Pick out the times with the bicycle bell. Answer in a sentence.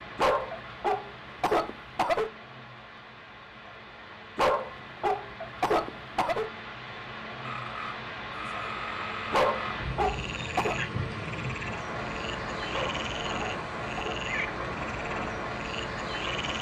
The bicycle bell can't be heard in this clip.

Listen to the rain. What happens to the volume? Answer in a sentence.
The loudness of the rain goes up.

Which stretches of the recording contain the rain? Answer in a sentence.
The rain can be heard from 0.0 to 16.5 s.